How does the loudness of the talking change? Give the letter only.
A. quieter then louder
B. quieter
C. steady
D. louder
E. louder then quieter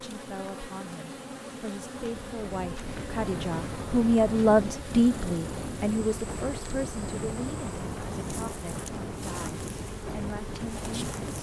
E.